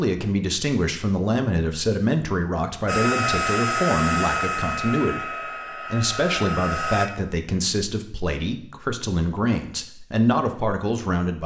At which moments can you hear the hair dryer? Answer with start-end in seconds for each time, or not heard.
2.9-7.1.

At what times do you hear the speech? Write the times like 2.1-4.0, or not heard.
0.0-11.4.